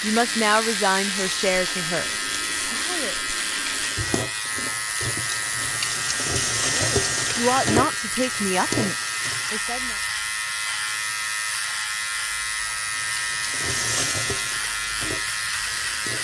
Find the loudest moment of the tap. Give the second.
7 s.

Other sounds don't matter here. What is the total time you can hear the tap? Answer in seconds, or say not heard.
13 s.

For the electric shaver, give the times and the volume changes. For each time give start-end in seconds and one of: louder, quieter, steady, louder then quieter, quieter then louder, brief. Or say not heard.
0.0-16.1 steady.